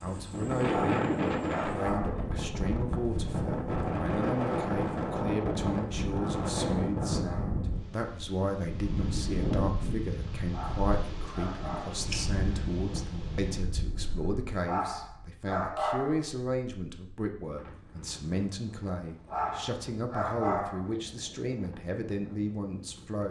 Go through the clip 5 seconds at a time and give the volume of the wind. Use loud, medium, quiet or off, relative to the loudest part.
loud, loud, medium, quiet, quiet.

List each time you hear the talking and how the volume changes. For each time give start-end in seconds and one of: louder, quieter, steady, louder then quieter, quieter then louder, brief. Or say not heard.
0.0-23.2 steady.